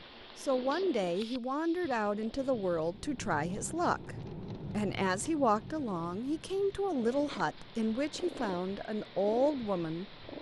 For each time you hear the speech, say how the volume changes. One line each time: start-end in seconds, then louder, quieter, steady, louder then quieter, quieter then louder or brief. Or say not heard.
0.3-10.2 steady.